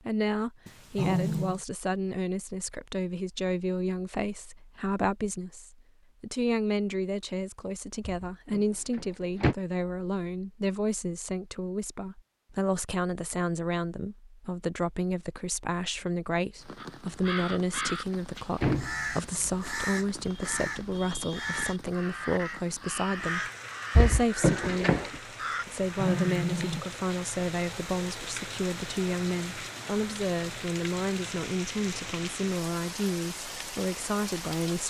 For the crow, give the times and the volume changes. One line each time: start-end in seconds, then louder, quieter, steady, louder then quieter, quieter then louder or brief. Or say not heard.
16.8-26.4 steady.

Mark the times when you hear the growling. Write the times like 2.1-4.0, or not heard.
0.7-1.6, 25.6-26.9.